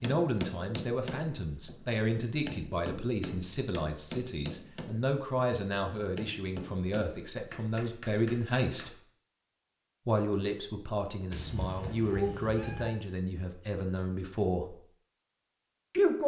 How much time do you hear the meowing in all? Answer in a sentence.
You can hear the meowing for 2 seconds altogether.